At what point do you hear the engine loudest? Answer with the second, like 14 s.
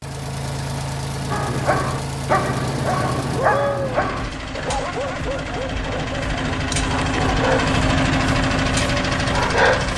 8 s.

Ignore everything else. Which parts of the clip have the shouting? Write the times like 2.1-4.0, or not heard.
not heard.